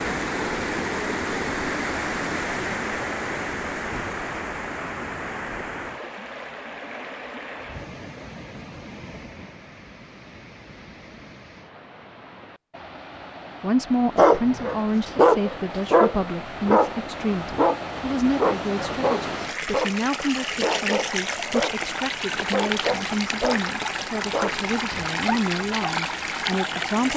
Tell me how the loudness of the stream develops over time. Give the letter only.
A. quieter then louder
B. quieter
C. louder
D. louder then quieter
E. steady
A.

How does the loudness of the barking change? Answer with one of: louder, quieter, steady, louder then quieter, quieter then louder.
quieter.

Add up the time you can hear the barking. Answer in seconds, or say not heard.
11 s.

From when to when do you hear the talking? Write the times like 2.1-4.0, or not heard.
13.6-27.1.